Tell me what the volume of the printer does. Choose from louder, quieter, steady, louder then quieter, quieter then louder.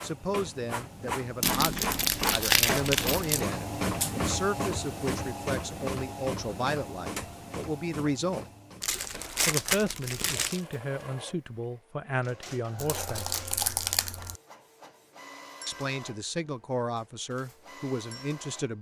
quieter.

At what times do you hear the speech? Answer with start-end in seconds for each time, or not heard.
0.0-8.4, 9.4-13.2, 15.7-18.7.